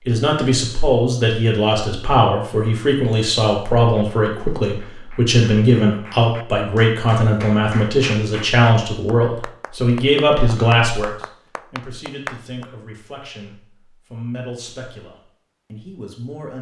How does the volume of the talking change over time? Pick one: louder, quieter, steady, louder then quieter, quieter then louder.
quieter.